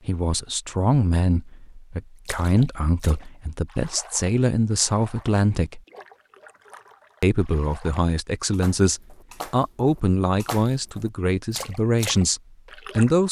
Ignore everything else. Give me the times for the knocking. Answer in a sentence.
The knocking can't be heard in this clip.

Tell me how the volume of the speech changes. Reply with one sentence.
The loudness of the speech stays about the same.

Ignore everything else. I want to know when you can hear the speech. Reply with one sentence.
You can hear the speech from 0.1 to 5.8 s and from 7.2 to 13.2 s.